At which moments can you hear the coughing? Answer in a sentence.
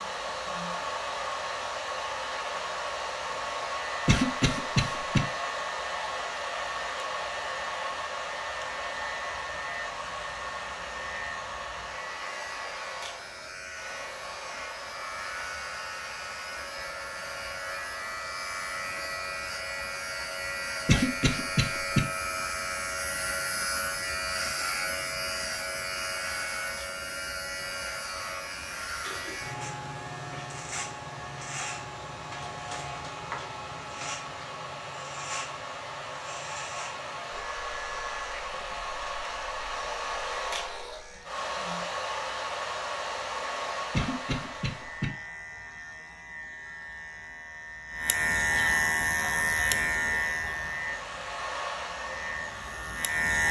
You can hear the coughing from 4.0 to 5.2 s, from 20.9 to 22.1 s and from 43.9 to 45.1 s.